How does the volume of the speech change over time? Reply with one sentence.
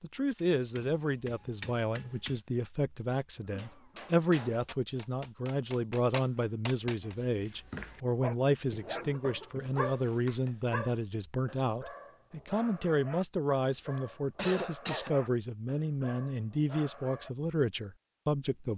The loudness of the speech stays about the same.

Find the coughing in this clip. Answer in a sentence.
You can hear the coughing from 3.5 to 4.2 s, from 8.7 to 9.8 s and from 13.9 to 15.2 s.